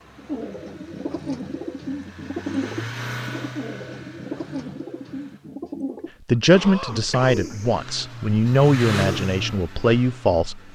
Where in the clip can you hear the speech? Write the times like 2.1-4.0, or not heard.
6.2-10.6.